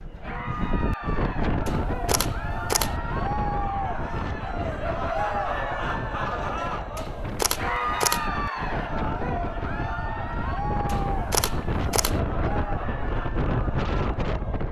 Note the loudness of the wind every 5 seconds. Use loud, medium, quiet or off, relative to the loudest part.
loud, medium, loud.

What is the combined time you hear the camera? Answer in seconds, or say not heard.
4 s.